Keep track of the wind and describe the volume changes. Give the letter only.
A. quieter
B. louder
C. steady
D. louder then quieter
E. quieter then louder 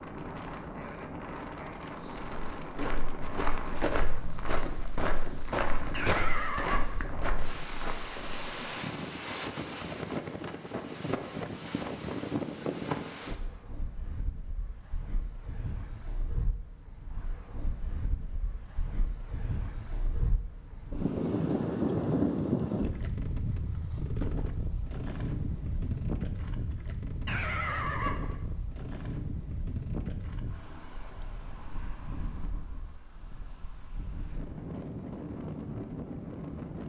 D.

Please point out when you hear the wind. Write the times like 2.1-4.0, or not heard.
0.0-36.8.